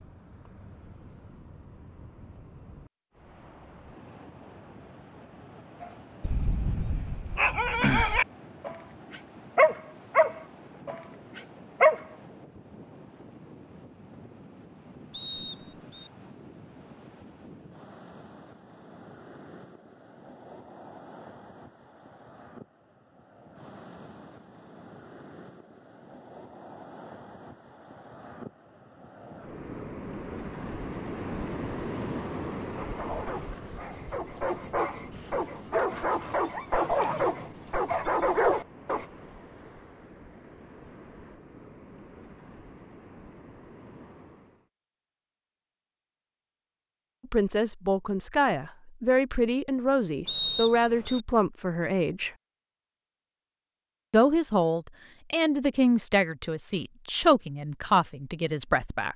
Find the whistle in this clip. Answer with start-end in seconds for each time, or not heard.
15.1-16.1, 50.2-51.2.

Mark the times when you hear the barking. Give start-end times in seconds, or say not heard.
5.8-12.1, 32.8-39.0.